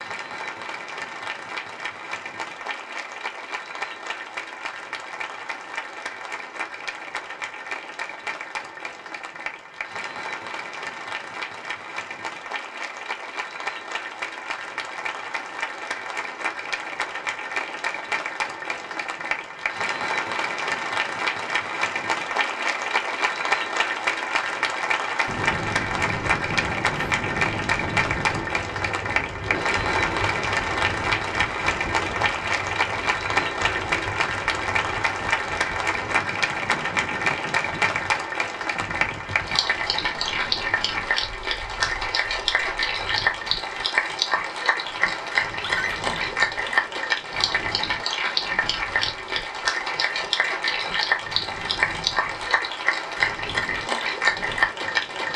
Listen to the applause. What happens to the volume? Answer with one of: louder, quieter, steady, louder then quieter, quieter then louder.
louder.